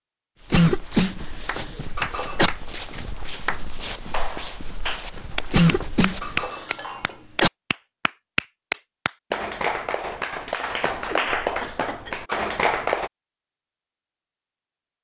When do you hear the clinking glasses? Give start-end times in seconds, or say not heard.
1.6-2.5, 5.8-7.2, 11.8-12.5.